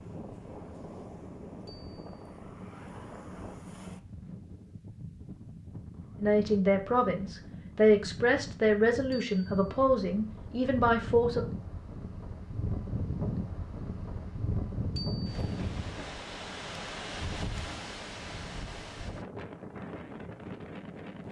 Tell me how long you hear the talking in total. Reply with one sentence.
The talking can be heard for 5 seconds in total.